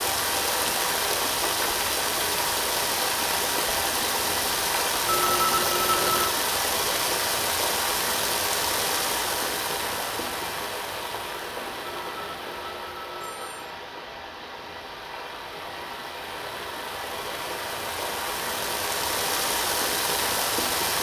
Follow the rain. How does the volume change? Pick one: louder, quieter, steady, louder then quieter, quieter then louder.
quieter then louder.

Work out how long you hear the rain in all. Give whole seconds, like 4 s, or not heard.
21 s.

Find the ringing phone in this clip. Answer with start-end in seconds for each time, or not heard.
5.0-6.3, 11.8-13.8.